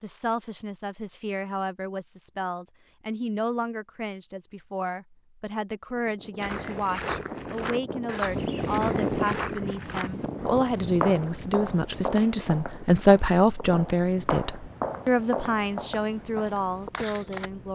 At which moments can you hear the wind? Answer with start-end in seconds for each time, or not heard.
5.9-17.6.